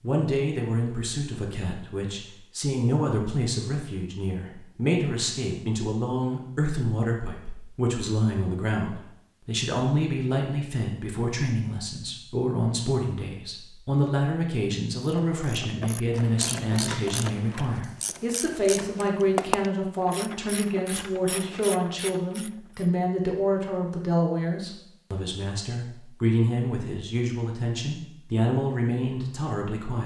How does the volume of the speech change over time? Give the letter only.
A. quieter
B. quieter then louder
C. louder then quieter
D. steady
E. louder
D.